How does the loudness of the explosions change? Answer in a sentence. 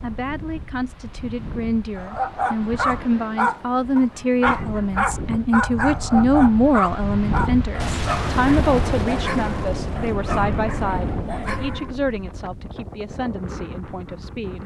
The loudness of the explosions stays about the same.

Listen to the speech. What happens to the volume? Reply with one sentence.
The volume of the speech goes up, then down.